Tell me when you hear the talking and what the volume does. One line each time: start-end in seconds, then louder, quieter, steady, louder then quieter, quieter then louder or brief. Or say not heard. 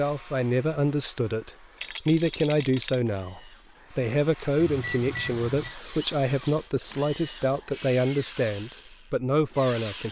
0.0-10.0 steady.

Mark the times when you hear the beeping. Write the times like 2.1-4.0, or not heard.
4.7-5.8.